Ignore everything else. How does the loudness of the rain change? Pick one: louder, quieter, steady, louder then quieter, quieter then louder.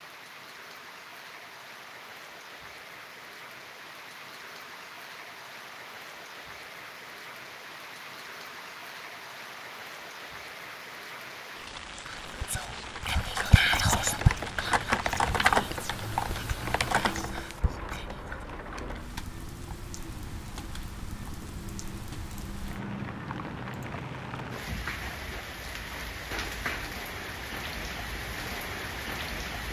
louder.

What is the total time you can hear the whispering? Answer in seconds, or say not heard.
6 s.